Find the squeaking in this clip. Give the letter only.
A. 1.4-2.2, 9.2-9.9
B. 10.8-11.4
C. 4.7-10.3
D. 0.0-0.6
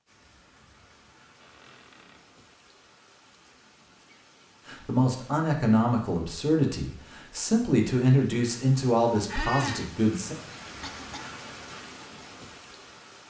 A.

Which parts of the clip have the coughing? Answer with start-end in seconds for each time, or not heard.
10.8-11.4.